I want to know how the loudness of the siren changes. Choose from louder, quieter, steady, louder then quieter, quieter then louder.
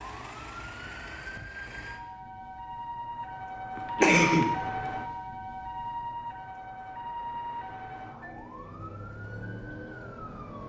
louder then quieter.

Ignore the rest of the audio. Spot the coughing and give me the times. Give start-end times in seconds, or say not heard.
3.8-4.5.